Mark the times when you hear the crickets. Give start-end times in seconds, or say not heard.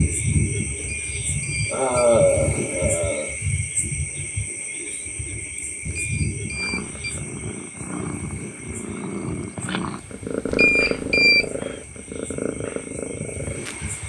0.0-14.0.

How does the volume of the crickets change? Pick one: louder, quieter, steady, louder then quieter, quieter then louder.
quieter.